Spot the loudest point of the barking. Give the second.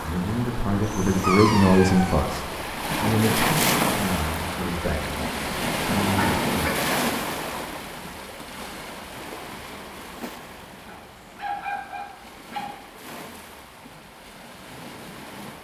1 s.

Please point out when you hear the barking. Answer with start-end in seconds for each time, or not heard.
0.9-2.2, 6.0-6.9, 10.8-12.7.